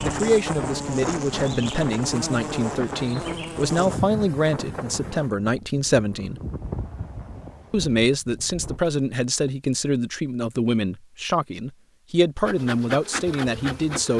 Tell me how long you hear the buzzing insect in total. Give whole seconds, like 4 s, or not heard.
7 s.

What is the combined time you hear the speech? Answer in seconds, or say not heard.
13 s.